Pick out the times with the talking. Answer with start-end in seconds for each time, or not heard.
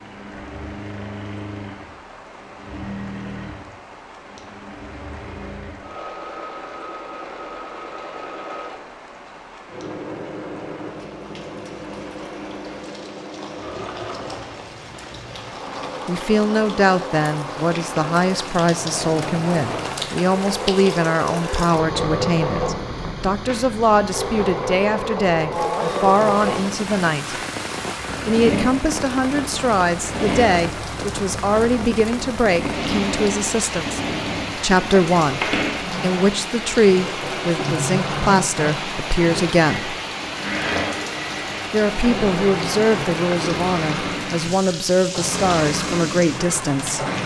16.1-27.4, 28.2-40.0, 41.7-47.0.